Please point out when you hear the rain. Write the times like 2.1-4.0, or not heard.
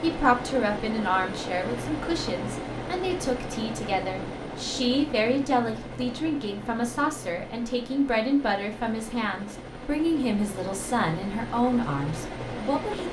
not heard.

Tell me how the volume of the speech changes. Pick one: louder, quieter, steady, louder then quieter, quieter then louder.
steady.